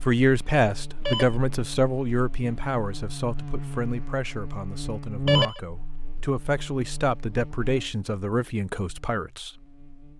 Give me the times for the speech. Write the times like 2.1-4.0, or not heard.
0.0-9.5.